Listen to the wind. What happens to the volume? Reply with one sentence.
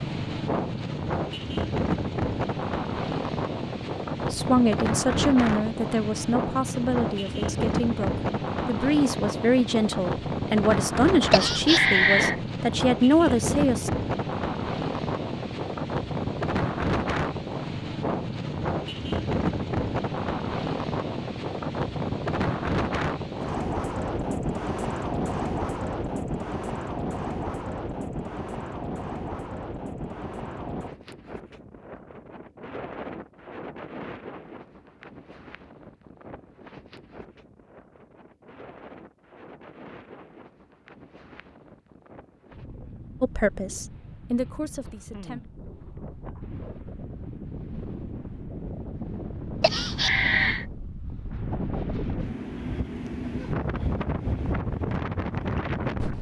The volume of the wind goes down, then up.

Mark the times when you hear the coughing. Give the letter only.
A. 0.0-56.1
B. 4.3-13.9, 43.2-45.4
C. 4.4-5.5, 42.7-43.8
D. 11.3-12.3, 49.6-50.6
D.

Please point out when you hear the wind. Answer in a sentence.
You can hear the wind from 0.0 to 56.1 s.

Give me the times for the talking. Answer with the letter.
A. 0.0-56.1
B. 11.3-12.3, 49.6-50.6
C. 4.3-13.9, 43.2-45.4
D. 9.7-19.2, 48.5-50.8
C.